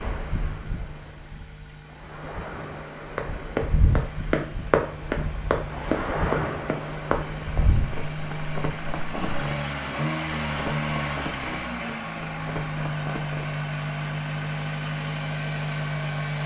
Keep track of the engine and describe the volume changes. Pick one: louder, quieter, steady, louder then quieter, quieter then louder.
louder.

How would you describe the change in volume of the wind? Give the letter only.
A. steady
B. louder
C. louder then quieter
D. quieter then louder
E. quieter
B.